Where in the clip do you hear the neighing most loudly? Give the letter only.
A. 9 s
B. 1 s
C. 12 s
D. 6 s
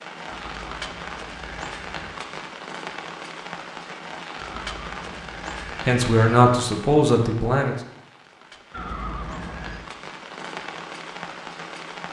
A.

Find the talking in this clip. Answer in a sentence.
You can hear the talking from 5.8 to 7.8 s.